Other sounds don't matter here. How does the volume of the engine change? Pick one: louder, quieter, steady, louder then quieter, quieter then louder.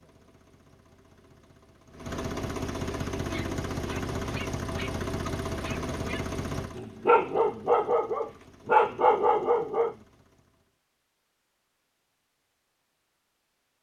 louder then quieter.